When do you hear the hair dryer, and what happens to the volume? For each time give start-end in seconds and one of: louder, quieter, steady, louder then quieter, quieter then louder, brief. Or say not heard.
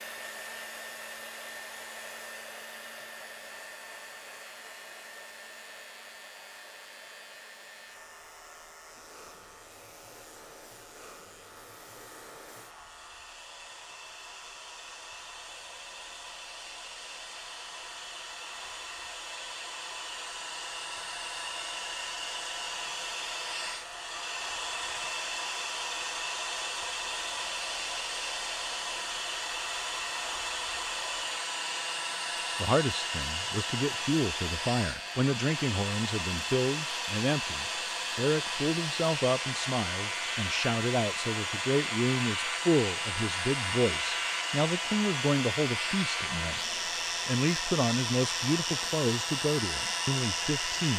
0.0-50.9 louder.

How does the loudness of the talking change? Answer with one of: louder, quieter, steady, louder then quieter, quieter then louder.
steady.